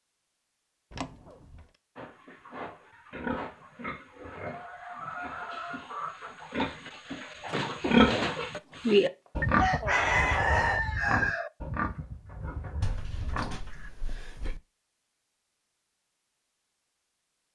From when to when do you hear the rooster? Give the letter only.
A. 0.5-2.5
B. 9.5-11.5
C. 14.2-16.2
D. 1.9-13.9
B.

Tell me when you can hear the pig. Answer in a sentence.
You can hear the pig from 1.9 to 13.9 s.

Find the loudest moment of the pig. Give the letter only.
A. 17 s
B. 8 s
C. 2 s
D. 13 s
B.